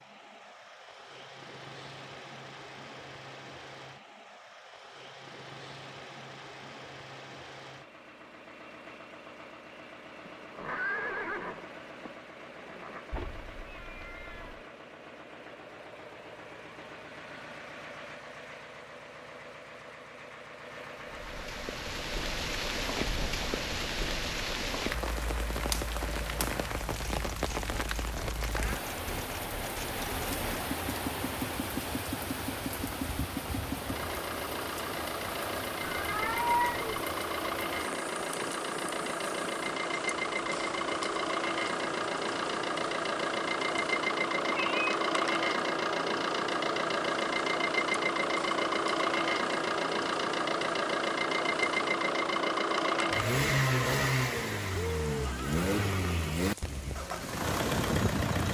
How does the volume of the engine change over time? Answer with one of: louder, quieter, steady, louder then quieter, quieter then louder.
louder.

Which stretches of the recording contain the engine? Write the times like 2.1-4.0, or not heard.
0.0-58.4.